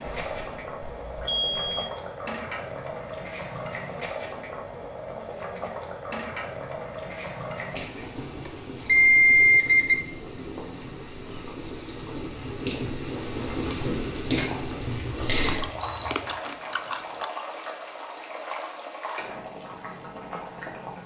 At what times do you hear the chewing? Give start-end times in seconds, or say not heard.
15.3-17.2.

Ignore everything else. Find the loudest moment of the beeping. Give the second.
9 s.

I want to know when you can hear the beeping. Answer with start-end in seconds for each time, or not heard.
0.1-1.9, 8.0-9.9, 14.8-16.4.